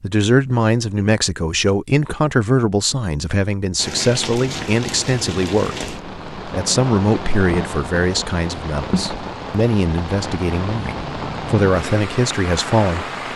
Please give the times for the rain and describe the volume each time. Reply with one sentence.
The rain can be heard from 3.8 to 13.3 s, at a steady volume.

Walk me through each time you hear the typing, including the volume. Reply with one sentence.
The typing can't be heard in this clip.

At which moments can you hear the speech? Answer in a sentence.
You can hear the speech from 0.0 to 13.1 s.